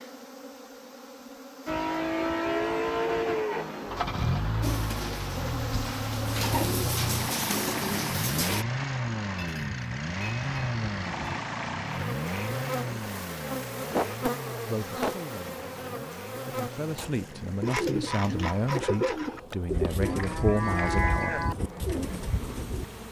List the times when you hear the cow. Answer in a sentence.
You can hear the cow from 2.1 to 3.7 s, from 9.3 to 11.4 s and from 20.1 to 21.6 s.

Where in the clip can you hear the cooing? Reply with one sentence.
You can hear the cooing from 4.6 to 8.7 s and from 17.6 to 22.9 s.